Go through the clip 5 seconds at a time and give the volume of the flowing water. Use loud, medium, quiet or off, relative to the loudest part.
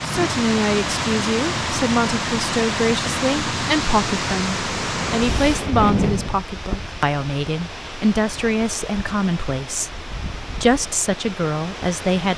loud, medium, medium.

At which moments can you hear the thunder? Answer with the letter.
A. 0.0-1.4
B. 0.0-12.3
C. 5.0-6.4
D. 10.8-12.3
C.